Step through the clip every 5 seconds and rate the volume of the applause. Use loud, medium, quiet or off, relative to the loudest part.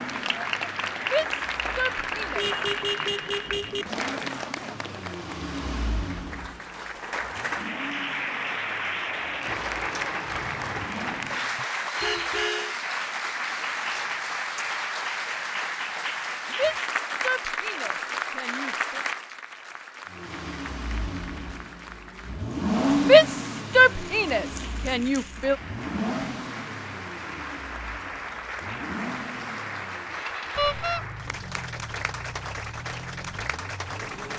loud, loud, loud, loud, quiet, medium, medium.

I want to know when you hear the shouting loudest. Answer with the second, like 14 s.
23 s.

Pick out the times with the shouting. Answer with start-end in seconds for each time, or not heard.
1.0-2.5, 16.5-19.0, 23.0-25.6.